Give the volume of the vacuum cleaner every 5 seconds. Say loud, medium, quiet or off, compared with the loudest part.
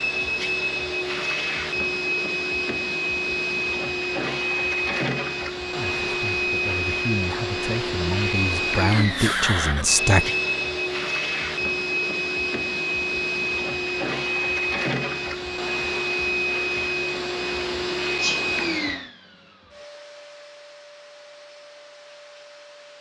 loud, loud, loud, loud, quiet.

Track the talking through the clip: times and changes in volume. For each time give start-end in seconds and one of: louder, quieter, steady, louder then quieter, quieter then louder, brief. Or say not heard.
5.8-10.3 louder.